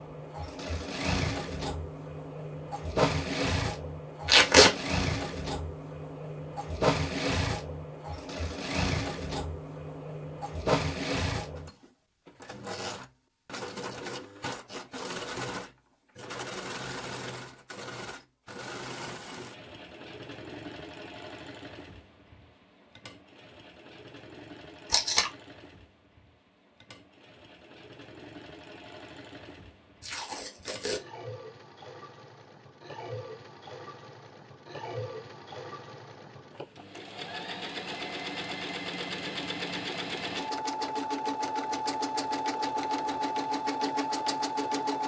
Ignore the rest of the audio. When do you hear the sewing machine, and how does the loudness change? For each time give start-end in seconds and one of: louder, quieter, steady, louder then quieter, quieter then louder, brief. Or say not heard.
0.0-45.0 quieter then louder.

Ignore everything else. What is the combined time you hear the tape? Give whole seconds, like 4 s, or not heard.
2 s.